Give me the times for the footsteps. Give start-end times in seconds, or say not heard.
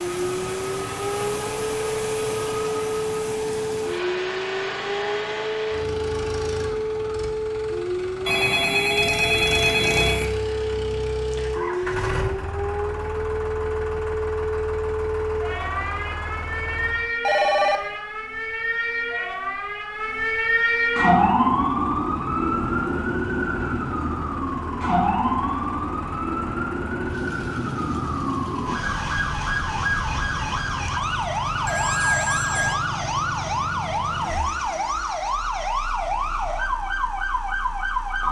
not heard.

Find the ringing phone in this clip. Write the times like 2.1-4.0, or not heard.
8.2-10.2, 17.2-17.8, 31.6-32.8.